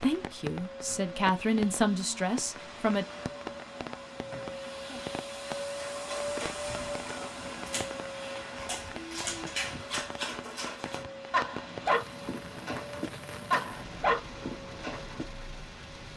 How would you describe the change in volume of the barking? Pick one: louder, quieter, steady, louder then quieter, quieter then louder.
louder.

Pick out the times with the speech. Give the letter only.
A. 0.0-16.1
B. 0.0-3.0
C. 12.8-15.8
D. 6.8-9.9
B.